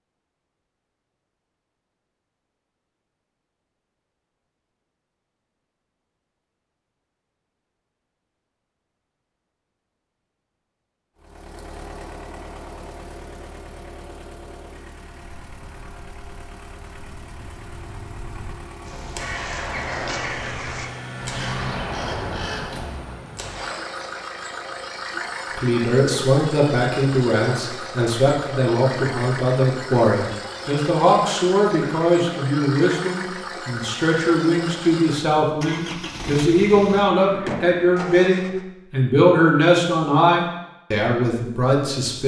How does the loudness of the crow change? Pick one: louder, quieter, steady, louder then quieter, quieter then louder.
louder.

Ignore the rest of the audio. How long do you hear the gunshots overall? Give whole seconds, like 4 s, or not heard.
5 s.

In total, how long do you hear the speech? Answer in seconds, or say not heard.
17 s.